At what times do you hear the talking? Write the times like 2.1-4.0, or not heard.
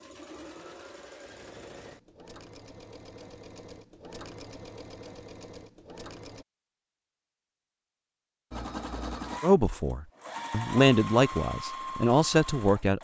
9.4-12.9.